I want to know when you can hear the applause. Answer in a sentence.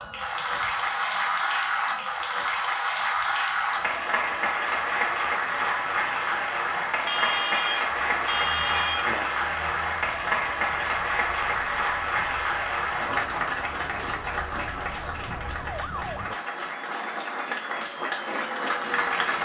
The applause can be heard from 0.0 to 19.3 s.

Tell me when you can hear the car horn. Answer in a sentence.
You can hear the car horn from 7.0 to 9.3 s.